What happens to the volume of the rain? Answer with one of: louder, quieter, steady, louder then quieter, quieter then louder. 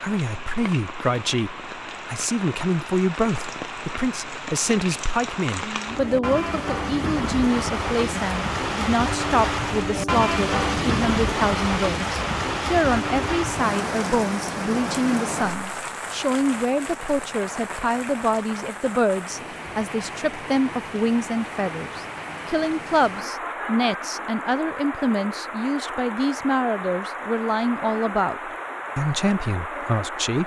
louder then quieter.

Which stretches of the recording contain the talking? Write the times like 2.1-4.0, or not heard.
0.0-30.4.